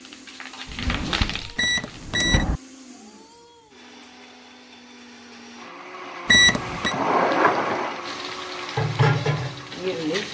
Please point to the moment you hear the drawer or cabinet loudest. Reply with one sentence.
The loudest moment of the drawer or cabinet is at 7 seconds.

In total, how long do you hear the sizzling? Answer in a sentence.
You can hear the sizzling for 4 seconds altogether.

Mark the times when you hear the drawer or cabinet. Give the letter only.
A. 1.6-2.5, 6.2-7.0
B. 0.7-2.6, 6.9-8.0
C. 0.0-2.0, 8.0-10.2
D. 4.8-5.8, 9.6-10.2
B.